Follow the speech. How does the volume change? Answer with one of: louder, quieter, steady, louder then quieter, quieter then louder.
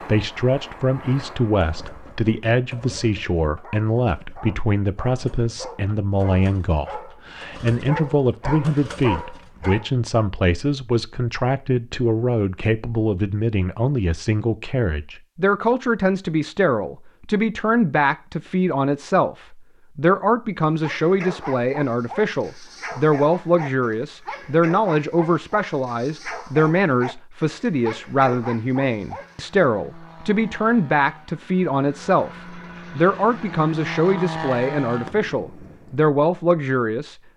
steady.